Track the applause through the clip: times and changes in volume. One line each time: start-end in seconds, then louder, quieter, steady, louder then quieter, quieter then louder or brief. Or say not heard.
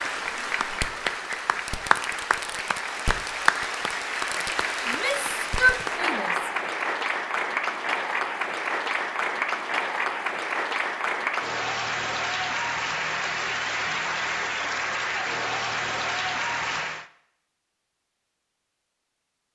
0.0-17.1 steady.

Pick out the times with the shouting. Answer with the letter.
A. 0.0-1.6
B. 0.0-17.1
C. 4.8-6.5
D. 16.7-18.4
C.